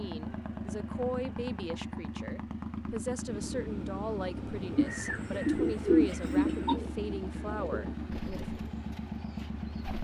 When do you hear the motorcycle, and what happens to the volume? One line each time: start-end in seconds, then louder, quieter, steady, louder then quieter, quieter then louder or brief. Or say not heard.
0.0-9.9 steady.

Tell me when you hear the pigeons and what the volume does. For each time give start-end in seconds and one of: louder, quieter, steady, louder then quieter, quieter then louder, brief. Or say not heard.
4.8-9.9 quieter.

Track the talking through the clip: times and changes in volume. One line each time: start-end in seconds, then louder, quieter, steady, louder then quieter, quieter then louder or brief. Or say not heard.
0.0-8.4 steady.